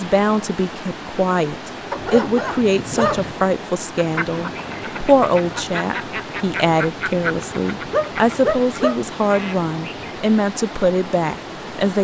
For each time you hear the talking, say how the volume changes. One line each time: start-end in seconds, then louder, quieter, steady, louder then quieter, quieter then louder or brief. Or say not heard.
0.0-11.9 steady.